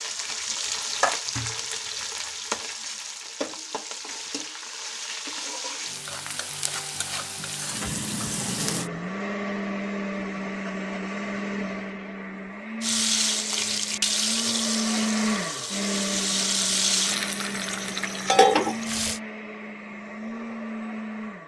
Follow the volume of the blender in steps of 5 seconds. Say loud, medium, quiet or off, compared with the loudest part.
off, loud, loud, loud, loud.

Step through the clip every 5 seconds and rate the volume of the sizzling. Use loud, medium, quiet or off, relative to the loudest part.
medium, medium, loud, loud, off.